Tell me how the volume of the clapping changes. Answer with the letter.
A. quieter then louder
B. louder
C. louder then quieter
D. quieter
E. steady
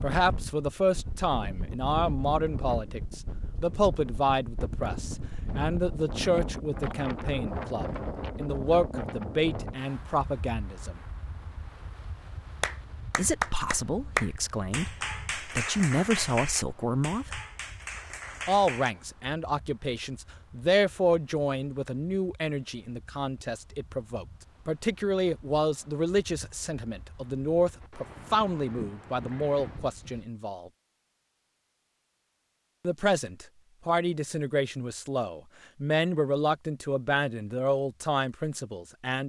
D.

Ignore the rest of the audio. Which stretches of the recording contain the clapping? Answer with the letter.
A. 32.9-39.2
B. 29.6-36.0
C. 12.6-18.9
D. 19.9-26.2
C.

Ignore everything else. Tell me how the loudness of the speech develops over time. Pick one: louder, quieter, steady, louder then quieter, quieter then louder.
steady.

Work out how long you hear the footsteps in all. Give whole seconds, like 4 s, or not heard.
not heard.